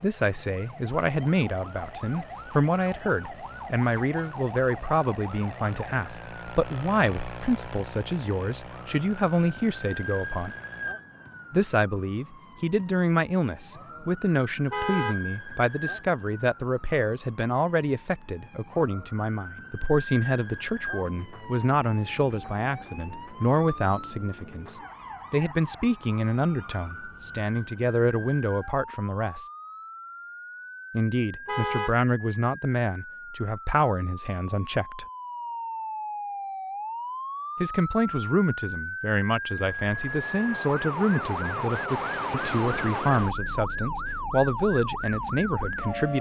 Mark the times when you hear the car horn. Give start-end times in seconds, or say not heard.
14.7-15.2, 31.4-31.9.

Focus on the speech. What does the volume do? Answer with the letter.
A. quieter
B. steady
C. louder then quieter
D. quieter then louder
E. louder
B.